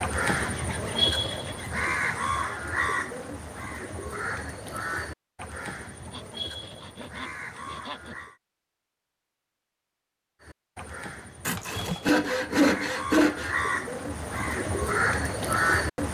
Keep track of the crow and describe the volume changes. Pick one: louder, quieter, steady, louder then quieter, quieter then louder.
quieter then louder.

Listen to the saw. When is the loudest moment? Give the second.
13 s.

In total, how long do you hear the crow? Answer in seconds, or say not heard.
14 s.